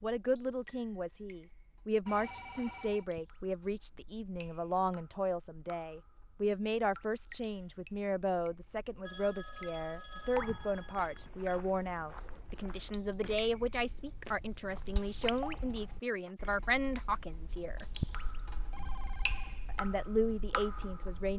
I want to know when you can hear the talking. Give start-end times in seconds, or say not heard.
0.0-17.9, 19.6-21.3.